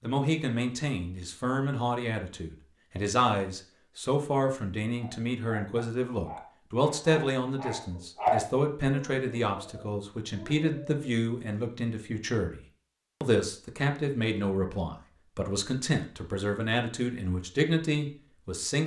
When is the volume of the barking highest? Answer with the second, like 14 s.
8 s.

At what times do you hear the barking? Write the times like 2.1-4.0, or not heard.
5.0-11.0.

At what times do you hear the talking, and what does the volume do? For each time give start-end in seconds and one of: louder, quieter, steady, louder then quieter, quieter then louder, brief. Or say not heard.
0.0-18.8 steady.